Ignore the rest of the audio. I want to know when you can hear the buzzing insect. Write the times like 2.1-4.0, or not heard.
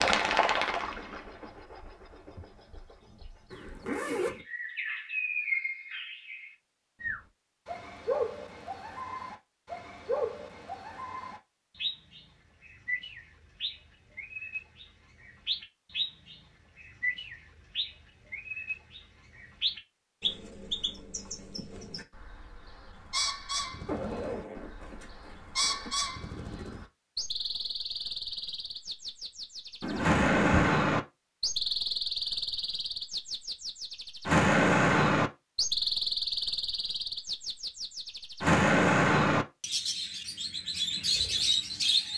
not heard.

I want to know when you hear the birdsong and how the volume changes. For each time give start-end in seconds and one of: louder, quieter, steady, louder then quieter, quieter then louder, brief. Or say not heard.
0.0-42.1 louder.